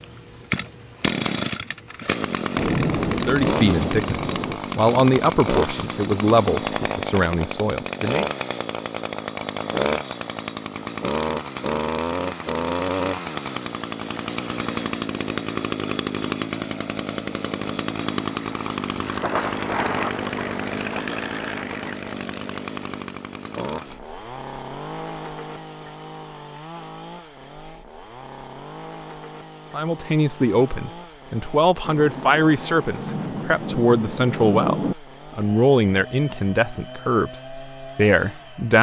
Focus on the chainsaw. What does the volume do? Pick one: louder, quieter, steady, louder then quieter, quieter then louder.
quieter.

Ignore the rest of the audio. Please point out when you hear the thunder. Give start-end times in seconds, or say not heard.
2.5-4.6, 19.1-21.9, 31.8-35.0.